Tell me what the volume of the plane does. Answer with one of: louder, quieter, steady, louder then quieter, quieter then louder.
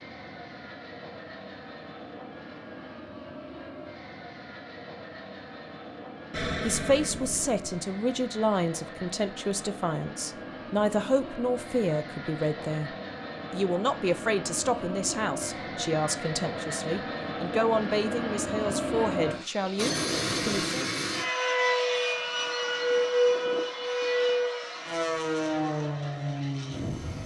louder.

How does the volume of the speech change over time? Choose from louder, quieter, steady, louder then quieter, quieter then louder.
steady.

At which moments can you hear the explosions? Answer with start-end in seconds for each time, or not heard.
6.3-7.6, 19.6-20.8.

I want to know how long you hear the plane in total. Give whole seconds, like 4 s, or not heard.
27 s.